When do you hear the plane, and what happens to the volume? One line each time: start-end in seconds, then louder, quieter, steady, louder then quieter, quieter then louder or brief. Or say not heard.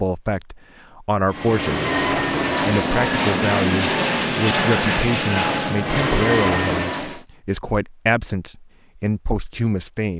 1.3-7.2 steady.